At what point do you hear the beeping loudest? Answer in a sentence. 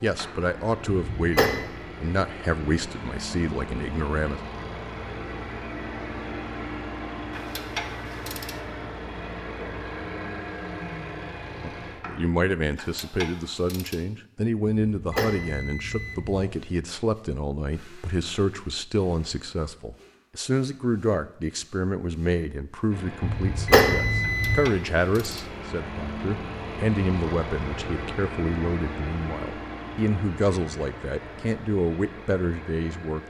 The loudest moment of the beeping is at 24 seconds.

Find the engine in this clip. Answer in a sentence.
The engine can be heard from 0.0 to 12.3 s and from 22.9 to 33.2 s.